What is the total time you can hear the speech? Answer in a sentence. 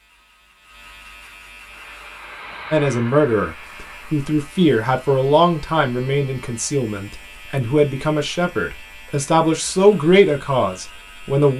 The speech can be heard for 8 seconds in total.